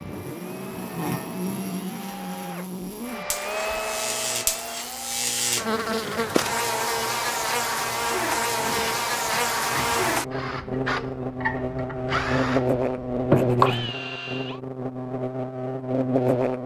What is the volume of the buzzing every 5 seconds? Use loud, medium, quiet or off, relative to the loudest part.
medium, loud, loud, loud.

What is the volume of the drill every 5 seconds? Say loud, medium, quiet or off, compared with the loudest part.
medium, medium, loud, off.